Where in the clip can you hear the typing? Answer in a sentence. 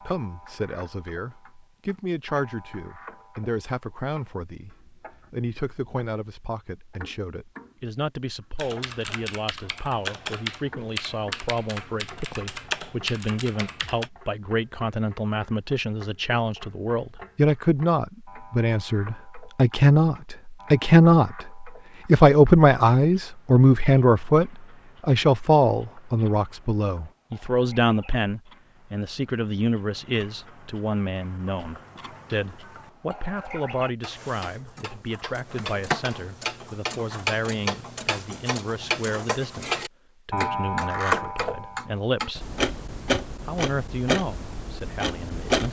You can hear the typing from 8.6 to 14.1 s.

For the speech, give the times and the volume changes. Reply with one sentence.
You can hear the speech from 0.0 to 42.5 s, getting louder then quieter; and briefly from 43.5 to 45.6 s.